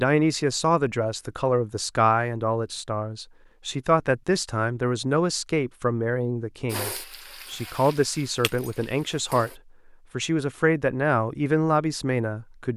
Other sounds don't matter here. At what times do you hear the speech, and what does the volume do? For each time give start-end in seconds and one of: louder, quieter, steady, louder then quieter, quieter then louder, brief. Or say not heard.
0.0-12.7 steady.